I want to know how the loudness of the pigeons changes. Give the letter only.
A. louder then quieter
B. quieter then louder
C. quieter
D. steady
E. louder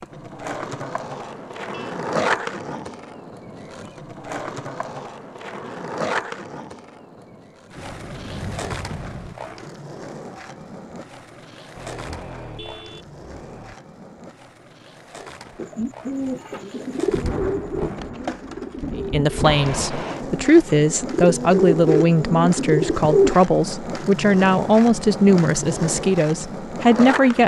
B.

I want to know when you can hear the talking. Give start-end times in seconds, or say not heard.
18.9-27.4.